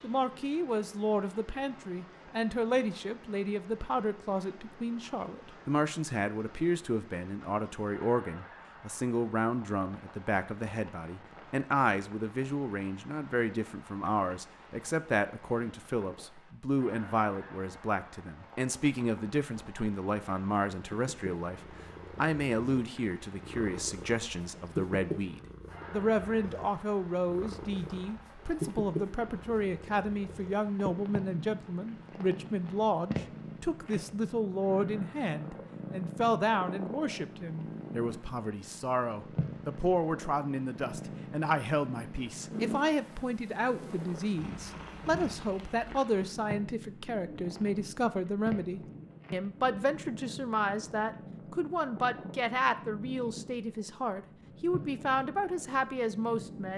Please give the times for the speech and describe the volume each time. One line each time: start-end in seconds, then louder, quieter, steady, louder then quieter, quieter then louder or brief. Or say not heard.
0.0-56.7 steady.